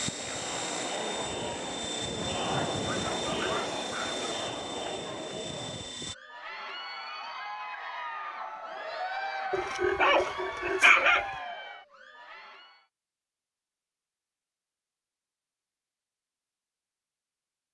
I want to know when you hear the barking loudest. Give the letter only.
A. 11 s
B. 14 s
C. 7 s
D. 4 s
A.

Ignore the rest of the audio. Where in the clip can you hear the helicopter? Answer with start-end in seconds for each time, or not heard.
0.0-6.2.